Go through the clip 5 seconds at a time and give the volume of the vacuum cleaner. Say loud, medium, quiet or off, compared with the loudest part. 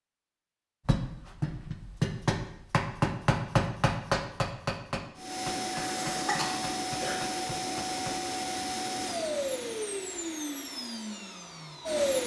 off, loud, loud.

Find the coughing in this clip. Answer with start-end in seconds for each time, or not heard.
5.7-7.2.